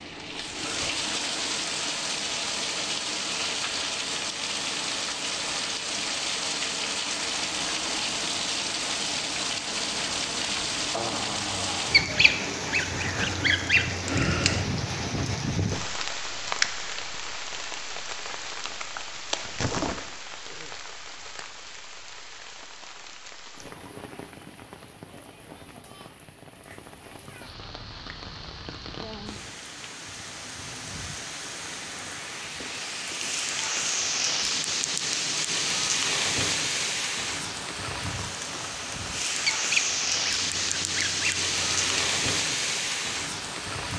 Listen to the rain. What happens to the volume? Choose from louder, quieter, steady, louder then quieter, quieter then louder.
quieter then louder.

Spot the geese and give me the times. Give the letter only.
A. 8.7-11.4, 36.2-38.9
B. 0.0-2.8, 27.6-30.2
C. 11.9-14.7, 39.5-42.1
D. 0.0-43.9
C.